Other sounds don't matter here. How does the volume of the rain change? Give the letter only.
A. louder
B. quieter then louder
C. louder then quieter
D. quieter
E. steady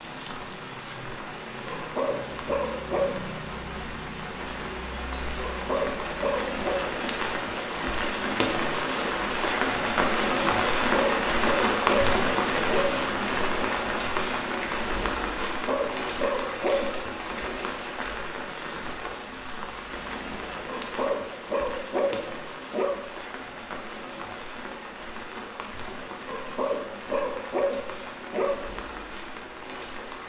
C.